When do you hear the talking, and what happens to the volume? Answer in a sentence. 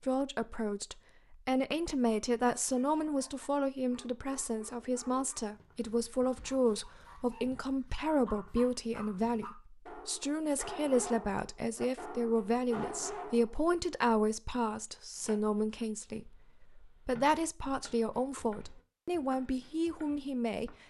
You can hear the talking from 0.0 to 20.8 s, at a steady volume.